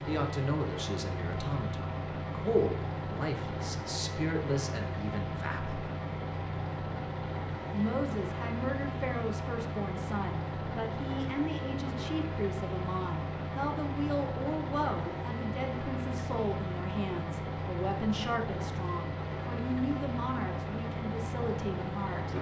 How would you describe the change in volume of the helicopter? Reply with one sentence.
The loudness of the helicopter stays about the same.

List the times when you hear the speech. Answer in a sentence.
You can hear the speech from 0.1 to 5.8 s and from 7.7 to 22.3 s.